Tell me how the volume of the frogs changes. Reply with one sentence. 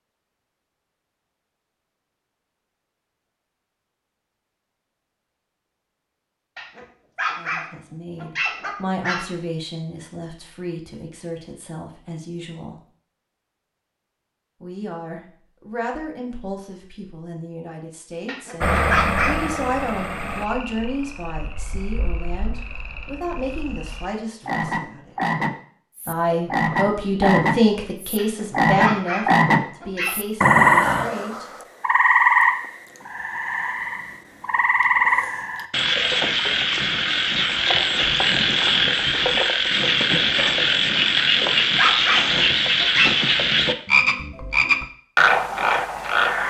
The loudness of the frogs goes up.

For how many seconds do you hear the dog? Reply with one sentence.
The dog can be heard for 8 seconds in total.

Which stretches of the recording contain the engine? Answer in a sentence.
You can hear the engine from 18.6 to 20.5 s.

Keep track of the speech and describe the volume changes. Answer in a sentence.
The volume of the speech goes up.